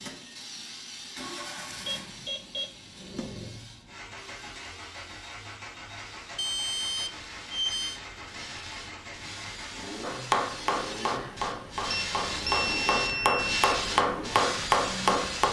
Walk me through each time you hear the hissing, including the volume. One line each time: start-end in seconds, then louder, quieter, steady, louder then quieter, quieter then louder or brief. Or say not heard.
0.0-15.4 quieter then louder.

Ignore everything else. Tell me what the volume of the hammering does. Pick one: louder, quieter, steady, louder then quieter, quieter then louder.
louder.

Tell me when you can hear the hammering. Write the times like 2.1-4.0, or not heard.
10.0-15.4.